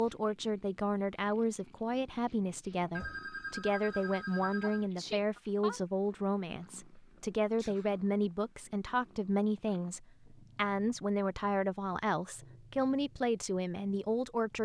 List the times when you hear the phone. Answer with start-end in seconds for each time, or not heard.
3.0-4.8.